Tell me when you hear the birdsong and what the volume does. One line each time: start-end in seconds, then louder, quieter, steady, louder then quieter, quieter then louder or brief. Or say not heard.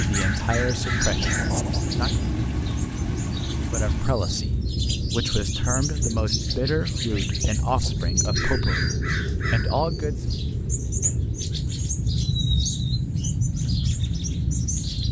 0.0-15.0 steady.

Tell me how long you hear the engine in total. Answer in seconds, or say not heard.
4 s.